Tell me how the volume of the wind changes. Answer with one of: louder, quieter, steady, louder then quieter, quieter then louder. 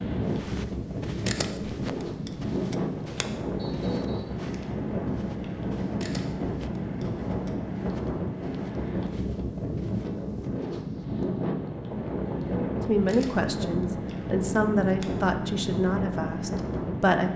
steady.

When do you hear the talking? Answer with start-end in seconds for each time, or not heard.
12.8-17.3.